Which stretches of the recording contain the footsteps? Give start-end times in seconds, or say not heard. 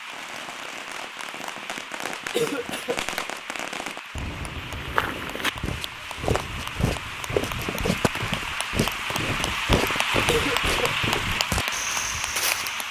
4.6-12.8.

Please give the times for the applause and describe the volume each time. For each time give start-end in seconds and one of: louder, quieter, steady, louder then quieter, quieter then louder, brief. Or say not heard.
0.0-12.8 louder.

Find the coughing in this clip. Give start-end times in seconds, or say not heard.
2.3-3.0, 10.2-10.9.